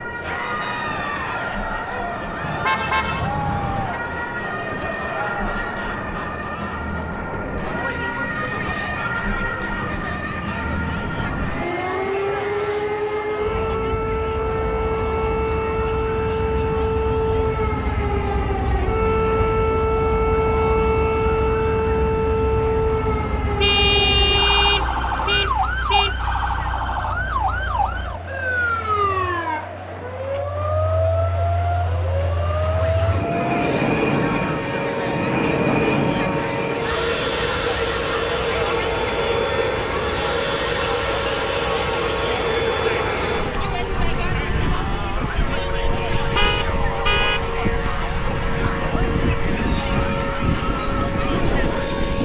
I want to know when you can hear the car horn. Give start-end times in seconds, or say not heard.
2.4-4.0, 23.6-26.1, 46.1-47.5.